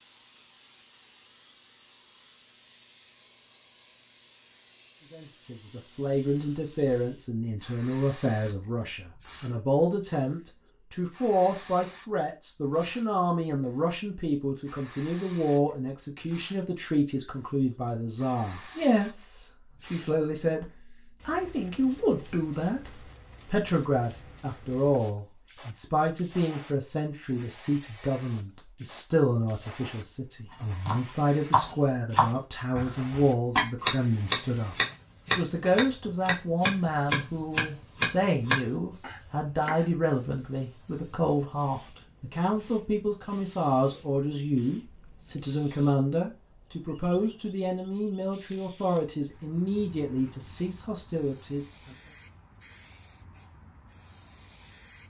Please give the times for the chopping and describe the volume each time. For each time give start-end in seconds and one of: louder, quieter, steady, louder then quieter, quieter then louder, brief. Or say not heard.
30.5-39.9 steady.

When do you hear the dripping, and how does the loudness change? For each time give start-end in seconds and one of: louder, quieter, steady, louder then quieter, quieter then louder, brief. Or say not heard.
not heard.